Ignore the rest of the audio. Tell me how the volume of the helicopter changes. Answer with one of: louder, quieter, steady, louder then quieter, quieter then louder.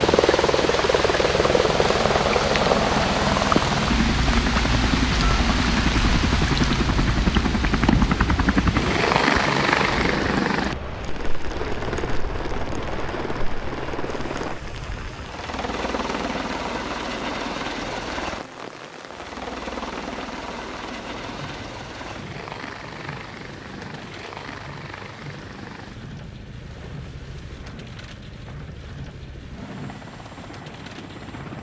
quieter.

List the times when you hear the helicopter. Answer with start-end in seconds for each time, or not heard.
0.0-31.5.